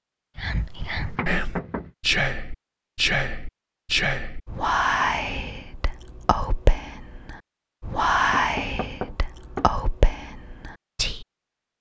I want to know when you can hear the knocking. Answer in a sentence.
The knocking can be heard from 1.1 to 1.9 s and from 8.2 to 9.8 s.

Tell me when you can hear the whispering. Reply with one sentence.
The whispering can be heard from 0.3 to 11.2 s.